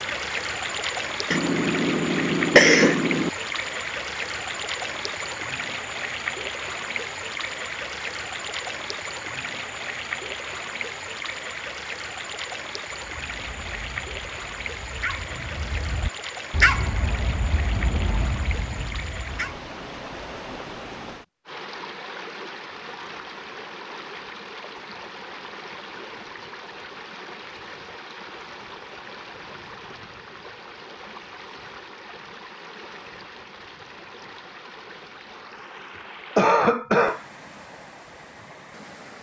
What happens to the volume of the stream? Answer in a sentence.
The volume of the stream goes down.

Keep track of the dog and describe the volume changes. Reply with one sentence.
The volume of the dog goes up, then down.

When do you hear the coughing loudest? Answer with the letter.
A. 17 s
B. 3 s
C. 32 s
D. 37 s
B.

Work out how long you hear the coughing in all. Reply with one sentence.
You can hear the coughing for 3 seconds altogether.